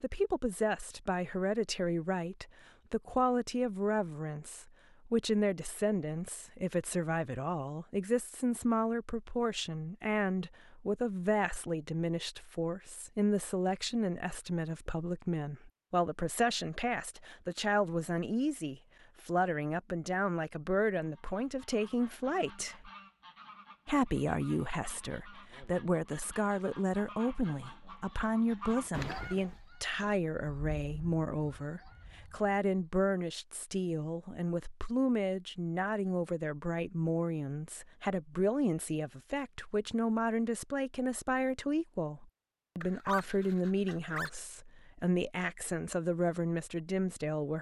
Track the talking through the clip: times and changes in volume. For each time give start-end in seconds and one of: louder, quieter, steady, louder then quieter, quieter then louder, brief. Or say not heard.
0.0-22.9 steady
23.9-47.5 steady.